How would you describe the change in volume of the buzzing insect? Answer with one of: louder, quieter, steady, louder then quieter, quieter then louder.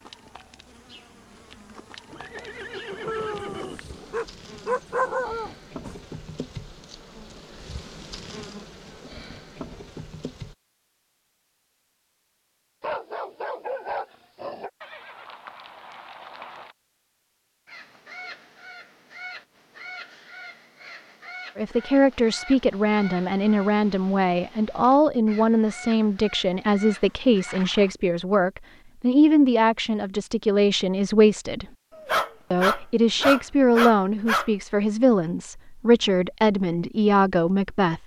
louder.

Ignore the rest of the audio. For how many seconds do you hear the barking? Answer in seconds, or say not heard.
7 s.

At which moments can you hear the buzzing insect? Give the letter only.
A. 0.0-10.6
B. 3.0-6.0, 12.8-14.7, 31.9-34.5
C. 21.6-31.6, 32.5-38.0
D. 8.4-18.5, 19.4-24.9
A.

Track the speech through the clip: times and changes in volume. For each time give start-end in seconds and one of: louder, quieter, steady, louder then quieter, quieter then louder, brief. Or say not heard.
21.6-31.6 steady
32.5-38.0 steady.